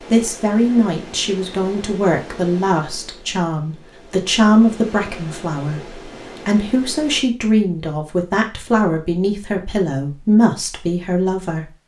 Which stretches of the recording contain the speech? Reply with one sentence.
The speech can be heard from 0.1 to 11.7 s.